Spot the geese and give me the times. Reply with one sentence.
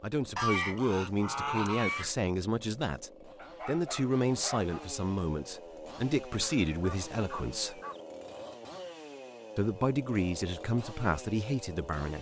You can hear the geese from 0.3 to 2.1 s and from 6.3 to 8.0 s.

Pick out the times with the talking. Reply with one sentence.
The talking can be heard from 0.0 to 7.8 s and from 9.6 to 12.1 s.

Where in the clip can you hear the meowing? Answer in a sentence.
You can't hear the meowing here.